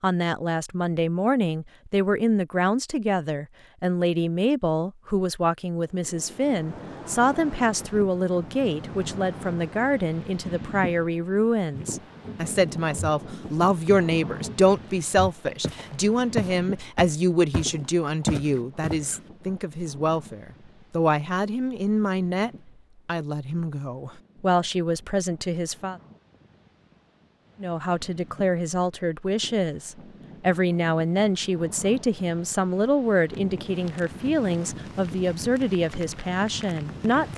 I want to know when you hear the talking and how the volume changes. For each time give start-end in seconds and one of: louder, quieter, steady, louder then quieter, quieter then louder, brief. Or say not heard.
0.0-25.9 steady
27.6-37.3 steady.